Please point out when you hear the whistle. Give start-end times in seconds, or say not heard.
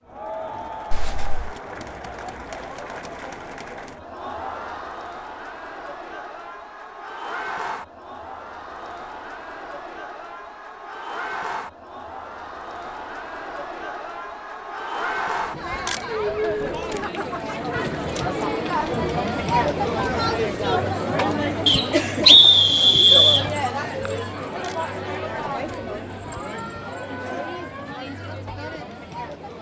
21.6-23.4.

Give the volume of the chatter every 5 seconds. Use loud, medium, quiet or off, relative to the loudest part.
medium, medium, medium, loud, loud, medium.